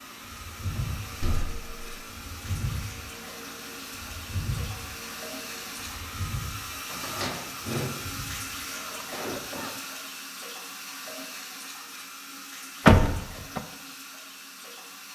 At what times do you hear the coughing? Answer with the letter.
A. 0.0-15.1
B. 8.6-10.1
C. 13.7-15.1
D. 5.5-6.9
B.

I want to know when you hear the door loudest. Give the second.
13 s.